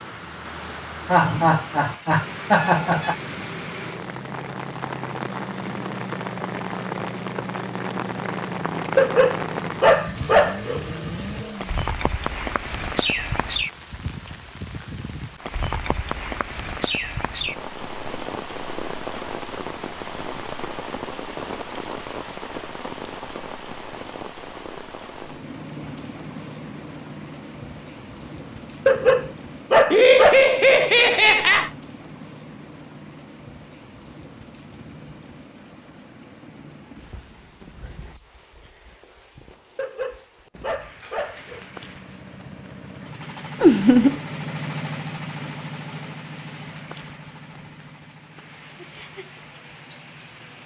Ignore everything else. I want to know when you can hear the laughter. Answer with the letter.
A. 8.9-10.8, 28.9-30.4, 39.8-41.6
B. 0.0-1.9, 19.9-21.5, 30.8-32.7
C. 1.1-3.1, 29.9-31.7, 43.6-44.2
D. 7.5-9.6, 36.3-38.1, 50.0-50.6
C.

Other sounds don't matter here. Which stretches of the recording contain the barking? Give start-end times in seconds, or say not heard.
8.9-10.8, 28.9-30.4, 39.8-41.6.